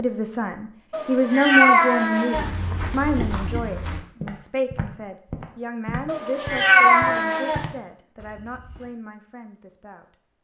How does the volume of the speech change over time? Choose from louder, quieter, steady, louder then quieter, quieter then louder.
quieter.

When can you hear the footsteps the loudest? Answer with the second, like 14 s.
3 s.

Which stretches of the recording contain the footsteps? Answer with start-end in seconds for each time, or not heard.
2.3-8.9.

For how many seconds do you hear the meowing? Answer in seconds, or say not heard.
3 s.